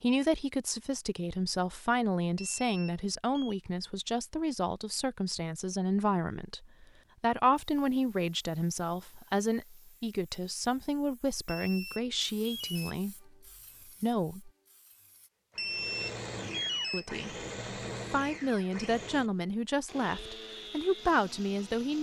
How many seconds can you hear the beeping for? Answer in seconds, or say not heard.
4 s.